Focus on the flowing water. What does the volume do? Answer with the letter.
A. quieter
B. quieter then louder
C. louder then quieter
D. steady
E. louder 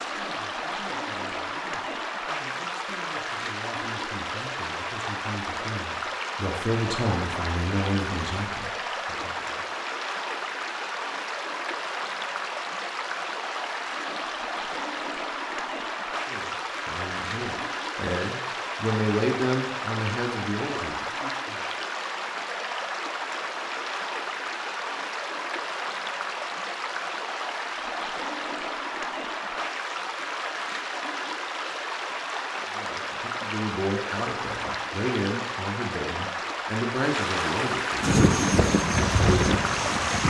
D.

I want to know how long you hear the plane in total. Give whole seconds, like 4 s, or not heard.
2 s.